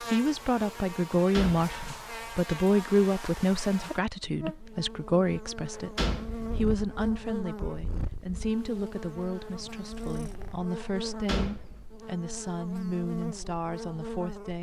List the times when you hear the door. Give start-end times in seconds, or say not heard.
1.3-1.9, 6.0-6.5, 11.1-11.8.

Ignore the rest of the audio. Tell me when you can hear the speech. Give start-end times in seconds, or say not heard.
0.0-6.0, 6.5-14.5.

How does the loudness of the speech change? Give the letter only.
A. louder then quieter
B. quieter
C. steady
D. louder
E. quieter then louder
B.